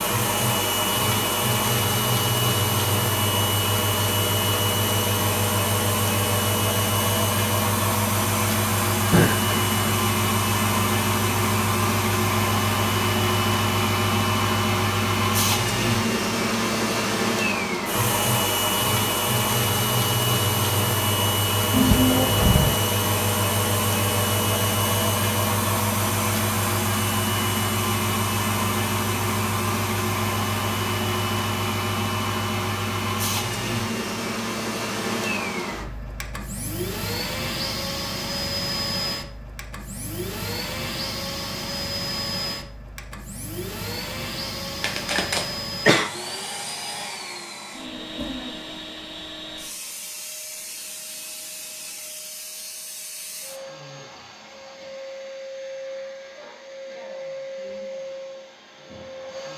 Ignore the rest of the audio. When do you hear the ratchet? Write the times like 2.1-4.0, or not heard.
not heard.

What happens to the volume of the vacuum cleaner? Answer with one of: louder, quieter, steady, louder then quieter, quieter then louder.
quieter.